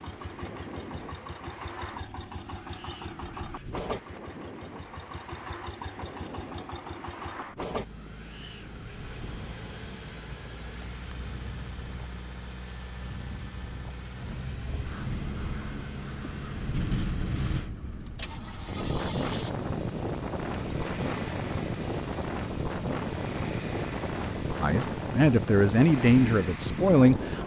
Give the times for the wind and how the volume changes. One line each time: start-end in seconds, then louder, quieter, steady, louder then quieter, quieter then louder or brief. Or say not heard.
0.0-27.4 louder.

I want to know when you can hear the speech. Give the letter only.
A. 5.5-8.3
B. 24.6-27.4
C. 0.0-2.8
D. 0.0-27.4
B.